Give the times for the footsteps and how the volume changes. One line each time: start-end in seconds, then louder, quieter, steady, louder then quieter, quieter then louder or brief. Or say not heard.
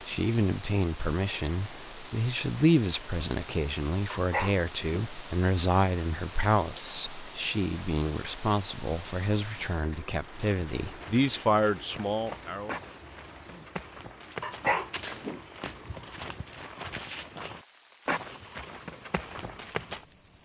10.2-20.1 louder.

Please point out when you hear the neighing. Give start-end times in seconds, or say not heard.
not heard.